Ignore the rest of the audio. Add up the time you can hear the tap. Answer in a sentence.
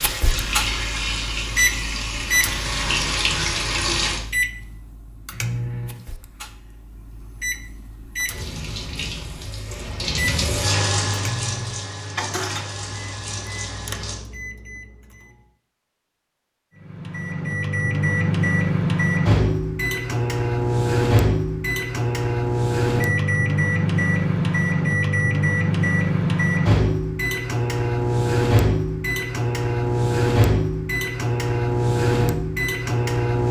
The tap can be heard for 10 seconds in total.